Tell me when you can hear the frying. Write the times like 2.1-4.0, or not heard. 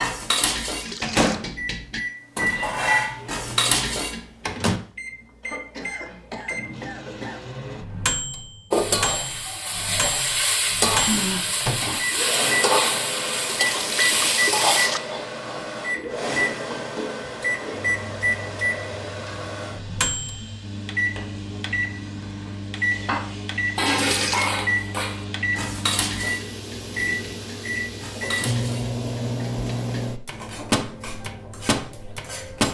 8.7-29.1.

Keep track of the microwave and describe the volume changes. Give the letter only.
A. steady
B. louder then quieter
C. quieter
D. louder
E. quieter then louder
A.